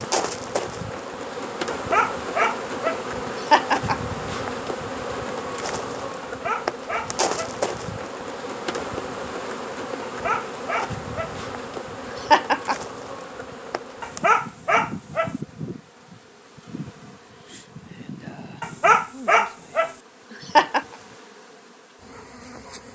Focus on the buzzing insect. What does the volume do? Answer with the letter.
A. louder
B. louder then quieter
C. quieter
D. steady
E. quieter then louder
C.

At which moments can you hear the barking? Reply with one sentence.
You can hear the barking from 1.7 to 3.0 s, from 6.2 to 7.5 s, from 10.1 to 11.3 s, from 14.0 to 15.3 s and from 18.6 to 19.9 s.